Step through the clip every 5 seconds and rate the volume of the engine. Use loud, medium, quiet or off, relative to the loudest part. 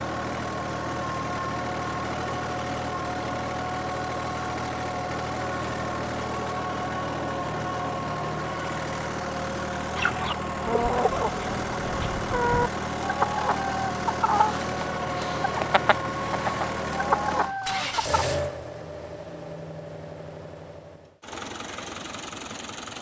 loud, loud, loud, loud, medium.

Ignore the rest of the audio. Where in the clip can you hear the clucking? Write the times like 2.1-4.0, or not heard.
9.9-18.2.